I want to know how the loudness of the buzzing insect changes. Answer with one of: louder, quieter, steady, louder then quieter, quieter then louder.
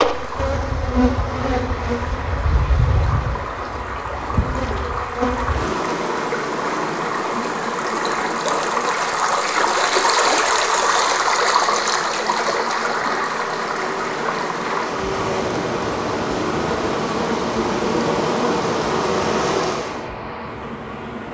quieter then louder.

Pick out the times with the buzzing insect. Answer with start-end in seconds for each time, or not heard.
0.0-20.1.